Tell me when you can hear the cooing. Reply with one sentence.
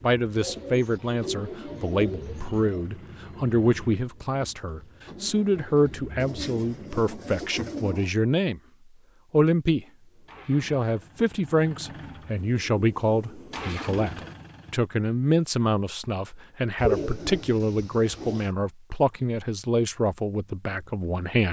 You can hear the cooing from 0.3 to 2.9 s, from 6.2 to 8.1 s, from 12.4 to 13.9 s and from 16.8 to 18.4 s.